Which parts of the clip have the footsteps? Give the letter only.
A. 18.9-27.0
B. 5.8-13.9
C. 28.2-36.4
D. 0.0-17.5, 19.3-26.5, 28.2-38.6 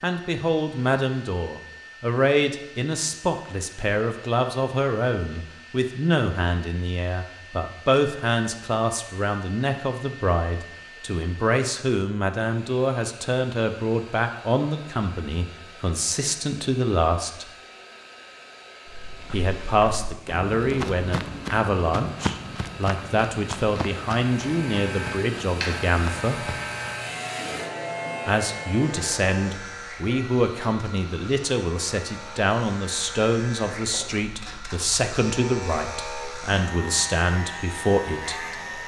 A.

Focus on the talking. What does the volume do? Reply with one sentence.
The loudness of the talking stays about the same.